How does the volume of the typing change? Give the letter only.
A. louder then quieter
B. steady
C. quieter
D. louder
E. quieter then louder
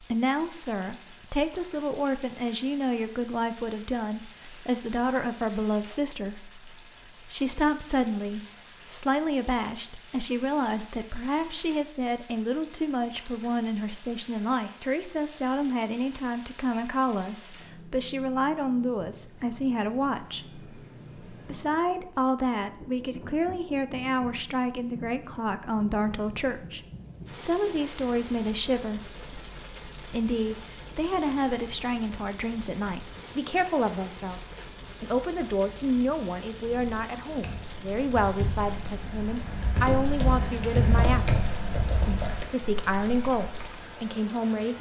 A.